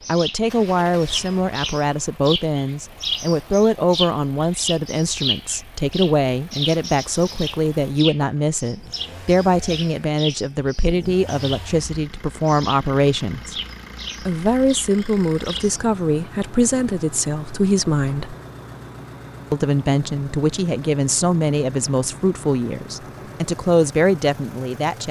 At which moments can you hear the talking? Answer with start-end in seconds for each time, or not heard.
0.1-13.6, 14.2-18.4, 19.5-25.0.